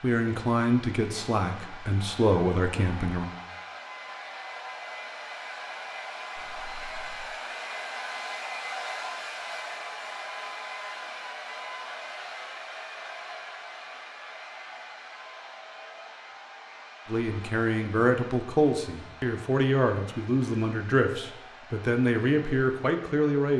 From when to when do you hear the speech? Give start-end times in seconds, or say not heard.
0.0-3.3, 17.1-23.5.